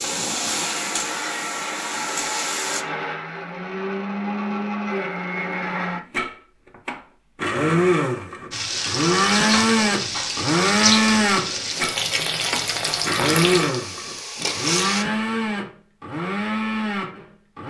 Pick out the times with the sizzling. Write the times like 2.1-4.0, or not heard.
0.0-2.9, 8.5-15.1.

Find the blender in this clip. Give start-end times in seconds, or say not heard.
0.0-17.6.